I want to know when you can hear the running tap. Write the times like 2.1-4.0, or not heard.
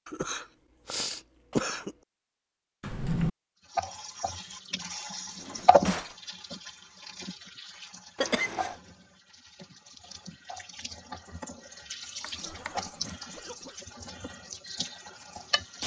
3.7-15.8.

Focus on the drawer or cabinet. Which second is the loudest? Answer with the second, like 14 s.
3 s.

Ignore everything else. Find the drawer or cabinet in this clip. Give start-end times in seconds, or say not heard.
2.8-3.3, 5.3-6.2, 12.2-13.2.